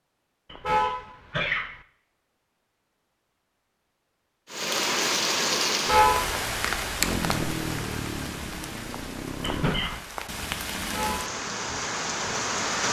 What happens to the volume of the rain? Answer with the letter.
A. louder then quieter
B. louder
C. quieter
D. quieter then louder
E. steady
D.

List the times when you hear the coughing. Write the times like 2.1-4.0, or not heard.
0.5-1.8, 9.4-10.1.